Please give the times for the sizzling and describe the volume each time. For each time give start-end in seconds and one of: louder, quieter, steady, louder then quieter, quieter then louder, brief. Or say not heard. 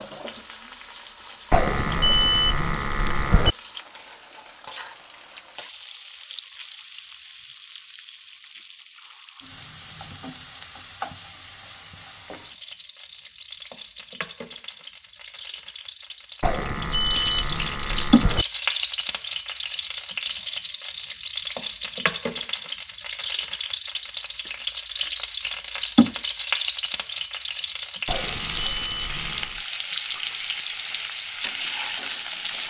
0.0-32.6 louder.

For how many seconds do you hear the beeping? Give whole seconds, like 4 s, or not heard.
6 s.